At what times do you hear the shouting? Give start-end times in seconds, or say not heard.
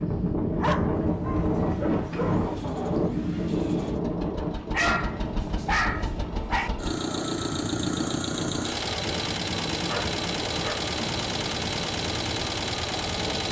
not heard.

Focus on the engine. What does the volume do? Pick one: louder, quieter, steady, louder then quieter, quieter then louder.
louder.